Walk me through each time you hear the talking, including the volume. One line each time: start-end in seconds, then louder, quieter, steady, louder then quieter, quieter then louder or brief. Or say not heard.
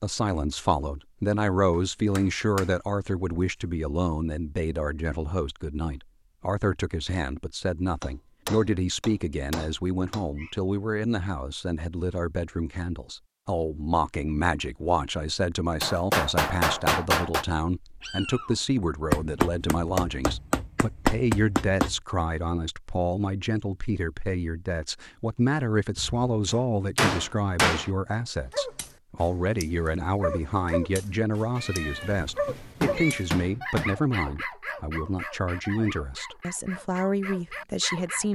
0.0-38.2 steady.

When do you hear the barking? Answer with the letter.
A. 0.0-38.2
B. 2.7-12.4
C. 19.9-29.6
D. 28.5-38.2
D.